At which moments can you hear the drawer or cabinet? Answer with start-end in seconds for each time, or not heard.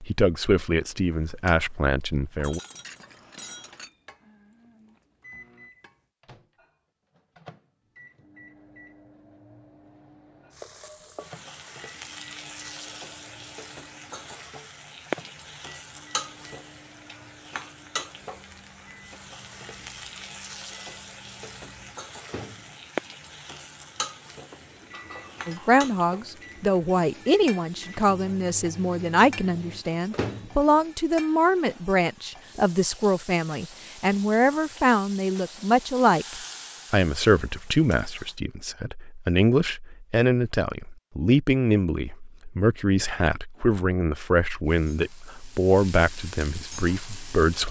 not heard.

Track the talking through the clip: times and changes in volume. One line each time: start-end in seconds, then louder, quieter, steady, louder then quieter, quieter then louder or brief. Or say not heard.
0.0-2.6 brief
25.4-47.6 steady.